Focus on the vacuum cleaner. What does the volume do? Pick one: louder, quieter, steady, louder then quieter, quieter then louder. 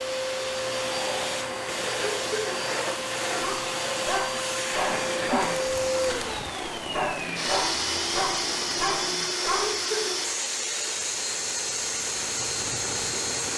steady.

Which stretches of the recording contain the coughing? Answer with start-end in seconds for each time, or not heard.
1.9-2.6, 4.5-5.7, 9.4-10.2.